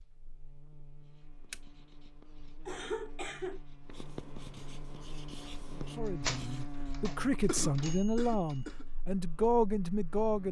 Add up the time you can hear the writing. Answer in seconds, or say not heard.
6 s.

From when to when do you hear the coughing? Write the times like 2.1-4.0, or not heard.
2.6-3.6, 7.5-8.8.